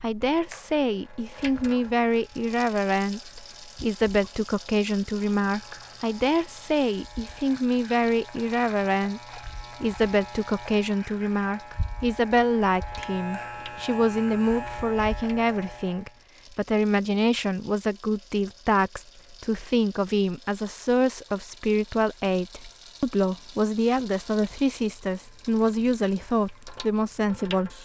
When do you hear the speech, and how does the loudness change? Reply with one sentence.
You can hear the speech from 0.0 to 27.8 s, at a steady volume.